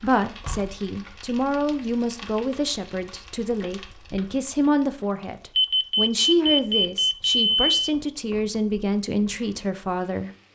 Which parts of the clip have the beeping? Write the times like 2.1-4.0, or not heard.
5.5-7.8.